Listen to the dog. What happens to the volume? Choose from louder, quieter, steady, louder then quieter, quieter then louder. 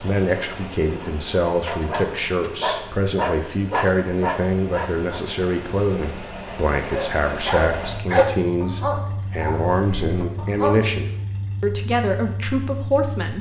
louder then quieter.